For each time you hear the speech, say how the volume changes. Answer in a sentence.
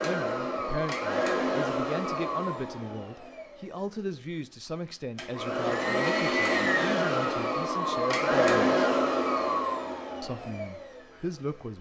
The speech can be heard from 0.0 to 8.8 s, at a steady volume; and briefly from 10.2 to 11.7 s.